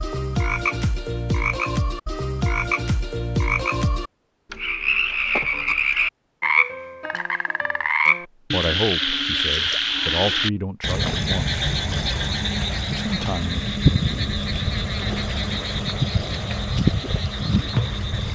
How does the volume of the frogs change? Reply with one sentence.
The loudness of the frogs stays about the same.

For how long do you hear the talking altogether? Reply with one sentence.
You can hear the talking for 4 seconds altogether.